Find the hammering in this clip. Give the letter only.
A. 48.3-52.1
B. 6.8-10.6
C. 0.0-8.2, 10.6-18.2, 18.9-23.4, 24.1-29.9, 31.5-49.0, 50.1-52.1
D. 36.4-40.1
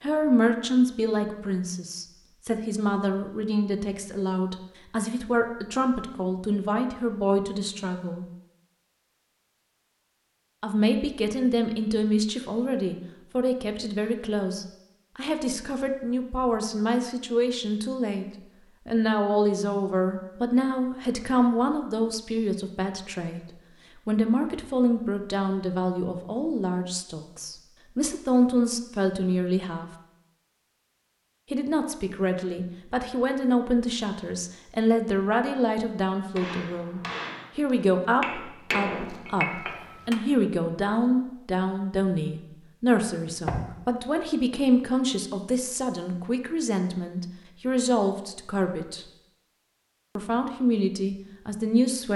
D.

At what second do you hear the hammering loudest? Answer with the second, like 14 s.
39 s.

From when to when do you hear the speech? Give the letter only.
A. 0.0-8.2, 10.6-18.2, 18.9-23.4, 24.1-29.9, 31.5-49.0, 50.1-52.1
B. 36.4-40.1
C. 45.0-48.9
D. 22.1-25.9
A.